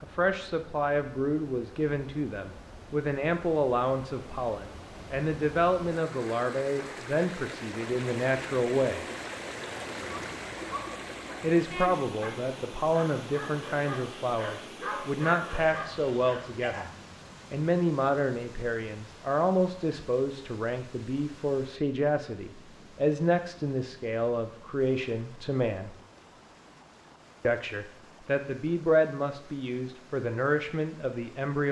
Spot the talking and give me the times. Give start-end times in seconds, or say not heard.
0.0-9.1, 11.4-16.9, 17.5-25.9, 27.4-31.6.